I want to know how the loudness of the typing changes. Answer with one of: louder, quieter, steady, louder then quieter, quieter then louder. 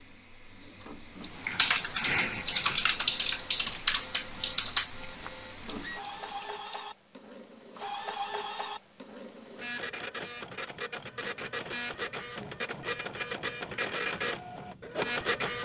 quieter.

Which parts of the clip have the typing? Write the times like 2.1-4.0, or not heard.
1.2-6.8.